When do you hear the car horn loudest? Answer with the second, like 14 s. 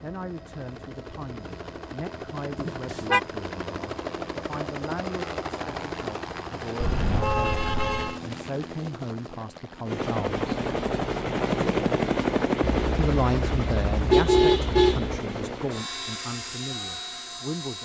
14 s.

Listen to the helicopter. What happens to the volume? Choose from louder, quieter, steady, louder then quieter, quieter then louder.
louder then quieter.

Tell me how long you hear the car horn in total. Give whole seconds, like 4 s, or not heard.
5 s.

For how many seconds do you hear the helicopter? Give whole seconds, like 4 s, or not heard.
18 s.